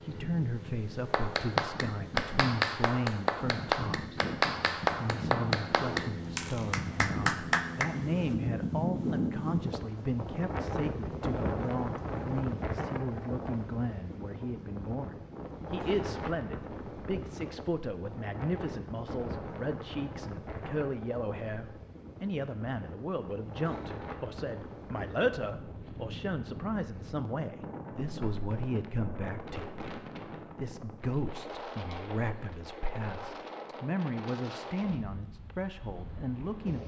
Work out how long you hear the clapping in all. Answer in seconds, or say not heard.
7 s.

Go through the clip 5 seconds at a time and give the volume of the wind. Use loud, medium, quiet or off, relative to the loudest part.
medium, loud, loud, medium, medium, medium, medium, quiet.